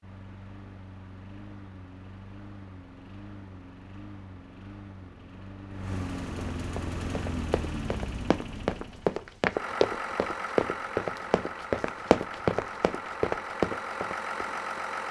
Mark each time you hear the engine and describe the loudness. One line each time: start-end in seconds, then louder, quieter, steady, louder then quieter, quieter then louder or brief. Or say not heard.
0.0-15.0 louder.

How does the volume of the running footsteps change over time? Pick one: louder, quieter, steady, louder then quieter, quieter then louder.
louder.